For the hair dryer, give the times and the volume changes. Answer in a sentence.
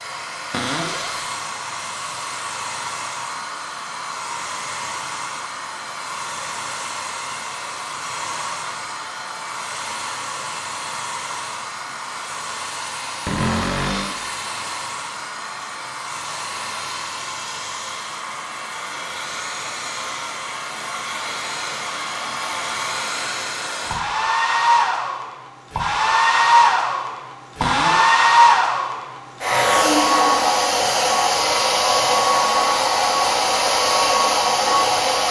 You can hear the hair dryer from 0.0 to 35.2 s, getting louder.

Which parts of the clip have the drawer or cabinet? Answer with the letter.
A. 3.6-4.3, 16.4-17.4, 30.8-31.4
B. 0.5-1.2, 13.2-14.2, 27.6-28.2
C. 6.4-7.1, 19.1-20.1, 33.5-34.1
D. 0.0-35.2
B.